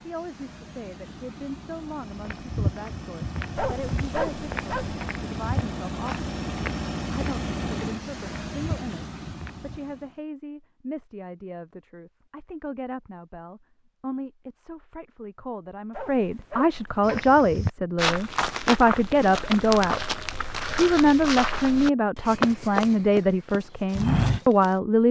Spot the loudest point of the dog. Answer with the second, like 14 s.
4 s.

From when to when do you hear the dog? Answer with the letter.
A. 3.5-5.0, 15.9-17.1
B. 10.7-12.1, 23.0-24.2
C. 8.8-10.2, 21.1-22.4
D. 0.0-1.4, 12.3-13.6
A.